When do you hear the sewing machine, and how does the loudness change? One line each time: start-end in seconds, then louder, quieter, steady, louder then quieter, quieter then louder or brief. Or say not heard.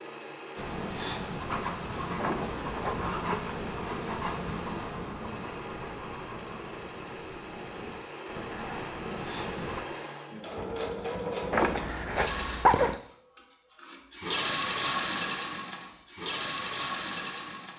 0.0-17.7 louder.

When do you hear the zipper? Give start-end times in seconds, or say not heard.
2.1-3.1, 11.5-13.0.